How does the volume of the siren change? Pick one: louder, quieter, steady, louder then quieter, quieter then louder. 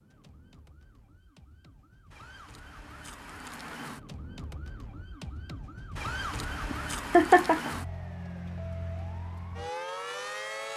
louder.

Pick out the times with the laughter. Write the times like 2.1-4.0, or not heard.
6.7-7.7.